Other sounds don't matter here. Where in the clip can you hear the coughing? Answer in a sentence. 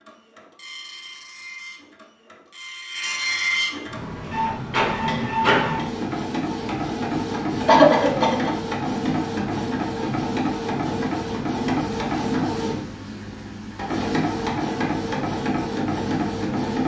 You can hear the coughing from 7.7 to 8.5 s.